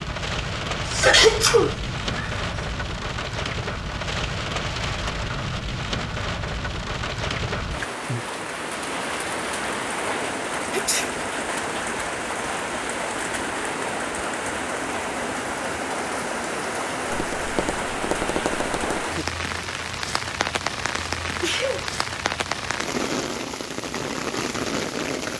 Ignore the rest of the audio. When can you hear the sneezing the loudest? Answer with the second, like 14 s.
1 s.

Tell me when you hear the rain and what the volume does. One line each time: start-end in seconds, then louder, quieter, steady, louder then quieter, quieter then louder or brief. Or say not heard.
0.0-25.3 steady.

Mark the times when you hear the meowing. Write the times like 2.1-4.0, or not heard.
not heard.